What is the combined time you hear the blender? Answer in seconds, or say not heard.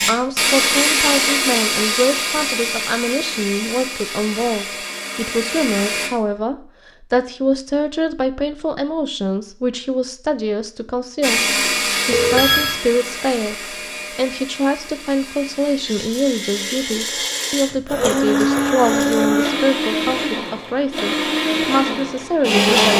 18 s.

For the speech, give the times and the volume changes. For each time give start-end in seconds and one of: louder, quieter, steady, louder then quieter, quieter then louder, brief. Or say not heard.
0.1-22.9 steady.